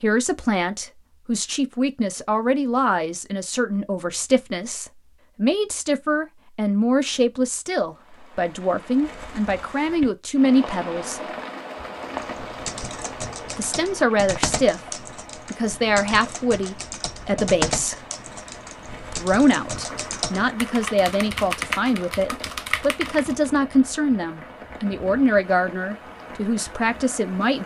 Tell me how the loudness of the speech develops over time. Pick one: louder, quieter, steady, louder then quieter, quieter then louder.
steady.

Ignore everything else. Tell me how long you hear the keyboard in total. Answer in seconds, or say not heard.
11 s.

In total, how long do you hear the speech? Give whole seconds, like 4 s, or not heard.
24 s.